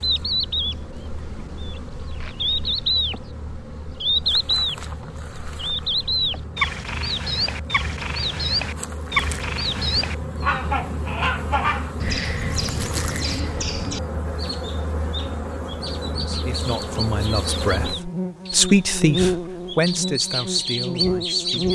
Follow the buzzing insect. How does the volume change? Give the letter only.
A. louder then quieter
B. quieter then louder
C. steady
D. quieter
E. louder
E.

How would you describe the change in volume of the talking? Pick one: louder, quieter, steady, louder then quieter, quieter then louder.
louder then quieter.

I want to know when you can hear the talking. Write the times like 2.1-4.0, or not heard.
16.1-21.6.